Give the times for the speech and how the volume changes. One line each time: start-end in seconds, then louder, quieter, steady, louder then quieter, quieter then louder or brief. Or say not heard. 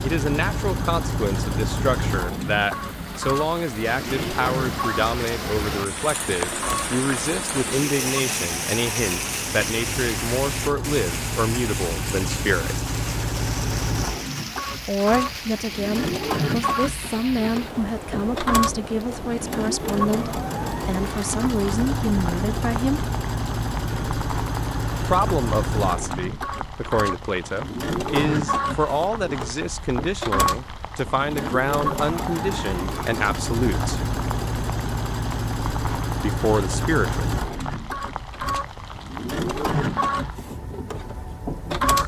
0.0-12.8 steady
14.8-23.1 steady
25.1-34.0 steady
36.1-37.2 brief.